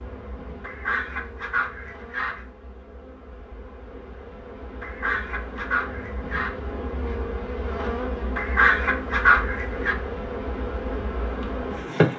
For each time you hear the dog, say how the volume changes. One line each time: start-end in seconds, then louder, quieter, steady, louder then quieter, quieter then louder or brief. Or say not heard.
not heard.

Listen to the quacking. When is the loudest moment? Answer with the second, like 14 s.
9 s.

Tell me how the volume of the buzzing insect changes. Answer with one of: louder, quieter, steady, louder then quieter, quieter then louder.
louder.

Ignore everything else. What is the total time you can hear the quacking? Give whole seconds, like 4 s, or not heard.
5 s.